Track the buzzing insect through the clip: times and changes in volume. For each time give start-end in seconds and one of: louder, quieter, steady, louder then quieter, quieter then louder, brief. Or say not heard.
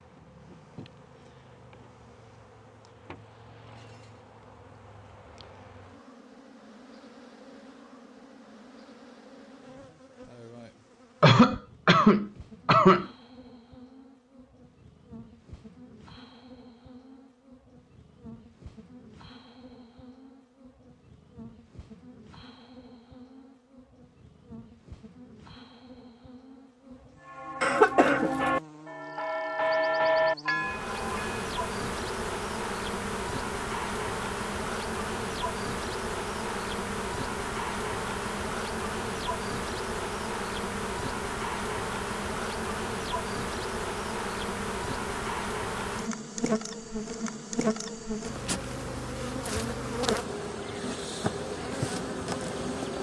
0.0-52.9 louder.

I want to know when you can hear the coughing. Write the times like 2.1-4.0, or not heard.
11.2-13.1, 27.6-28.3.